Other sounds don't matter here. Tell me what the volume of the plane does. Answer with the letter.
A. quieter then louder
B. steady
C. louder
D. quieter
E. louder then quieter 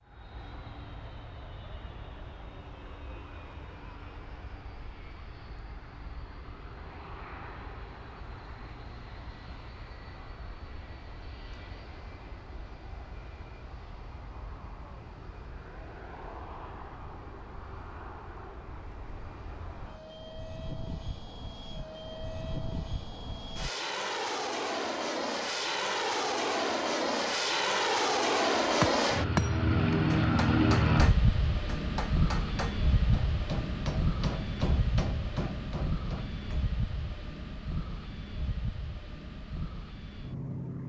E.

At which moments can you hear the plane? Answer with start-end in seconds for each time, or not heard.
0.0-40.8.